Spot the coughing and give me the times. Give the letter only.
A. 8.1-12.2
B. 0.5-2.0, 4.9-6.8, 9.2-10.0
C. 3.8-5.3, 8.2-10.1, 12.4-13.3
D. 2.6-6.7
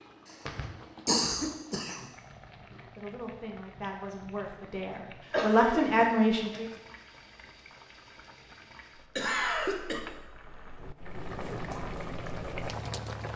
B.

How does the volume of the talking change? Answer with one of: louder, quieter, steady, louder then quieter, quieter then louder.
louder.